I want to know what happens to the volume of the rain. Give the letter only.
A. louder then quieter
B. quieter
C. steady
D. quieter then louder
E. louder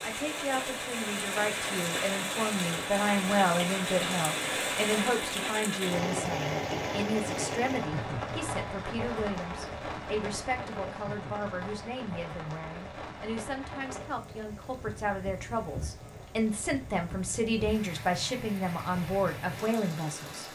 B.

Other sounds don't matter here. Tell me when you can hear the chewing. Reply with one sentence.
You can't hear the chewing here.